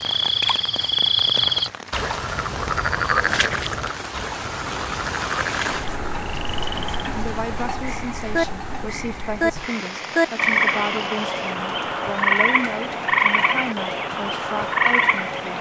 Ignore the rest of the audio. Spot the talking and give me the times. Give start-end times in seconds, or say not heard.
7.1-15.5.